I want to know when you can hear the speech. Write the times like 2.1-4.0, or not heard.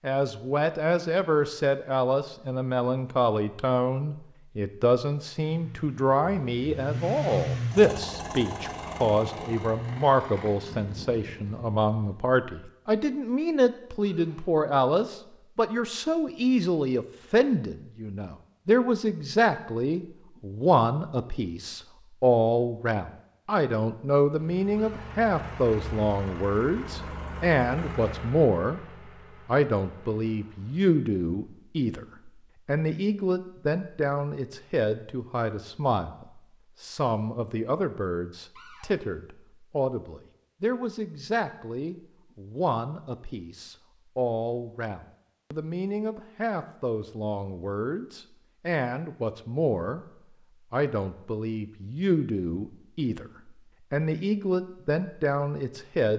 0.0-28.8, 29.4-50.0, 50.7-56.1.